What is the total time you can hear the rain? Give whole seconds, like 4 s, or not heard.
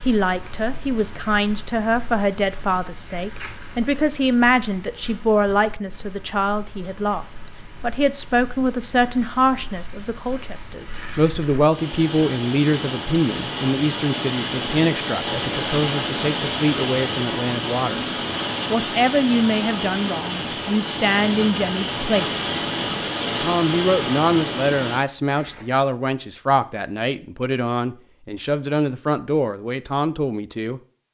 25 s.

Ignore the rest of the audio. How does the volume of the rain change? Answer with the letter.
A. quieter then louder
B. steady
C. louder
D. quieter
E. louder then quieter
C.